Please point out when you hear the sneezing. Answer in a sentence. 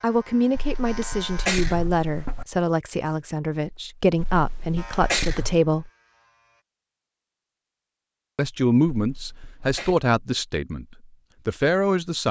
The sneezing can be heard from 0.5 to 2.5 s, from 4.2 to 5.6 s and from 8.9 to 9.9 s.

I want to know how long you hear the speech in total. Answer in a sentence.
The speech can be heard for 10 seconds in total.